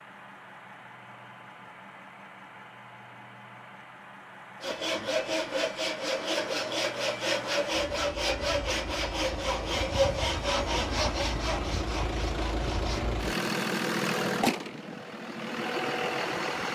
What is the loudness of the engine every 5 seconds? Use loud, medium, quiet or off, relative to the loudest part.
quiet, medium, loud, loud.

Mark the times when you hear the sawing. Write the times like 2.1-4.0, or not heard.
4.6-13.1.